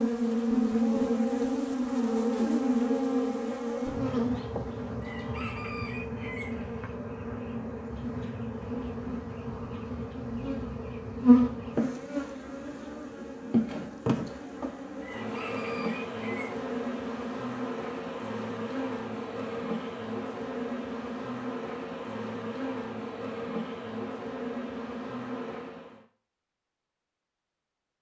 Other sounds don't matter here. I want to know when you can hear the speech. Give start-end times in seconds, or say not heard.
not heard.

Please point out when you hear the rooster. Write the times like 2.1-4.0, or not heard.
5.0-6.5, 15.0-16.6.